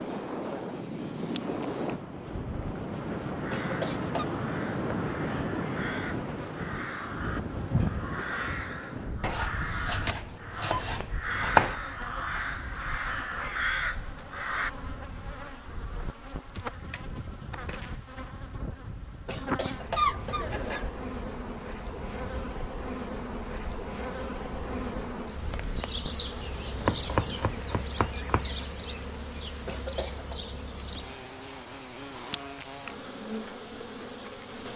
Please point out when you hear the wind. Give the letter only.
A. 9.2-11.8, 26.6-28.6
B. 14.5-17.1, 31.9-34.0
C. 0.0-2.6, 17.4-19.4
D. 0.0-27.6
D.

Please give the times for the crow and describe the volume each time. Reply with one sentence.
You can hear the crow from 3.2 to 14.7 s, getting louder.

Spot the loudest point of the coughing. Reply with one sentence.
The loudest moment of the coughing is at 20 seconds.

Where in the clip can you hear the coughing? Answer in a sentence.
The coughing can be heard from 3.5 to 4.2 s, from 19.2 to 20.9 s and from 29.6 to 30.4 s.